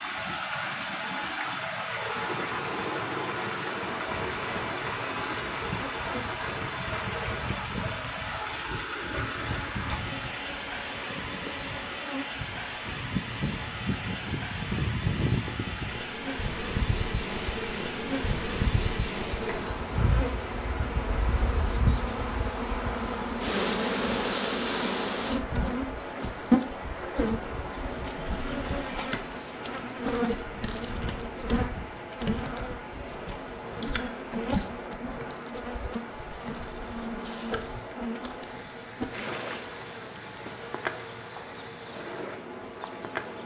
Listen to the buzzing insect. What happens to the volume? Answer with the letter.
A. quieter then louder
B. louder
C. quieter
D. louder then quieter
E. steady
D.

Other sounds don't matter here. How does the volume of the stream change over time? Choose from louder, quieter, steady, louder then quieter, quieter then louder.
quieter.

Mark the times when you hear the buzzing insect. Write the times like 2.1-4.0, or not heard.
4.0-43.4.